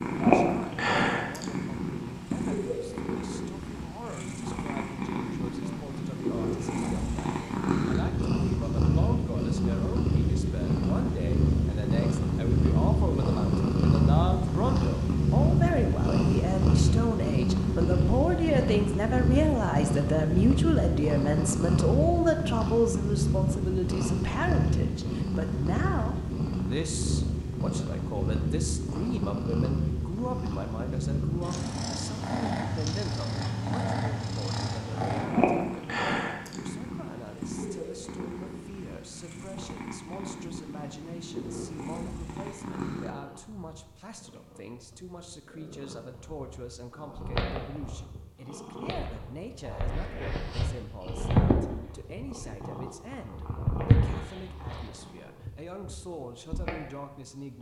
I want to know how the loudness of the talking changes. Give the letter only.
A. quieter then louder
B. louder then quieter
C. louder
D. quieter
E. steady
B.